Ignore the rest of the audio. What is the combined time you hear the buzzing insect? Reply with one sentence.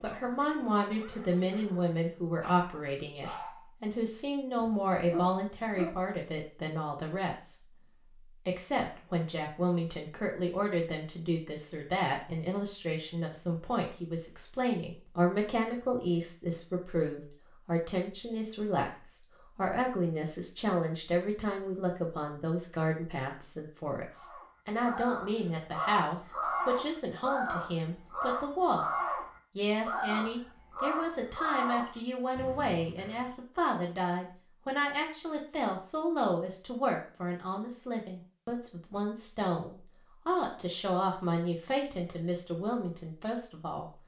The buzzing insect can't be heard in this clip.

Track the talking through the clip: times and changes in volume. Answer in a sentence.
You can hear the talking from 0.0 to 28.9 s, at a steady volume; and from 29.6 to 43.9 s, at a steady volume.